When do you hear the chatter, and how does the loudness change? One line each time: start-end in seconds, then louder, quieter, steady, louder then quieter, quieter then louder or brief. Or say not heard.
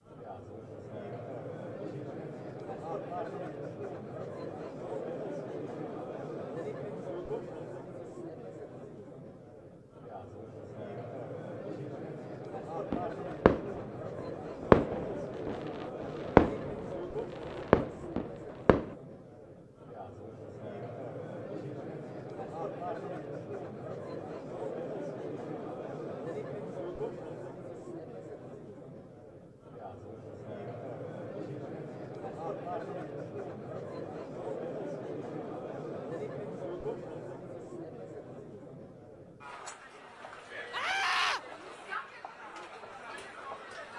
0.0-43.9 steady.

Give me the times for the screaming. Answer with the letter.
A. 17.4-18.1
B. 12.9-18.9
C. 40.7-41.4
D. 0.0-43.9
C.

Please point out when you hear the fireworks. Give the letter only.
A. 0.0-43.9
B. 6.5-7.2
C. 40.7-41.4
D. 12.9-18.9
D.